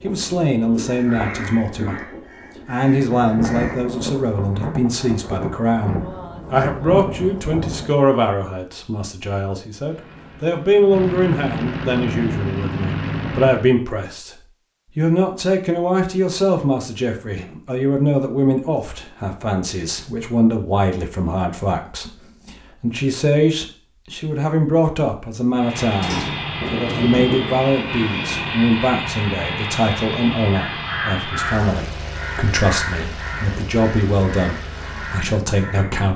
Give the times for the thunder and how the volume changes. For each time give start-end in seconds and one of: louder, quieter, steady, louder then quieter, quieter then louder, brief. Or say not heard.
3.1-8.0 steady
26.6-28.6 brief.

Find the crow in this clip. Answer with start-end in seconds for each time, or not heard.
0.0-4.0, 30.6-36.0.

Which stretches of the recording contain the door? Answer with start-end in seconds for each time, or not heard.
25.9-26.6.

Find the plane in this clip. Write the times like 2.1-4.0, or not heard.
9.8-13.7, 25.5-36.1.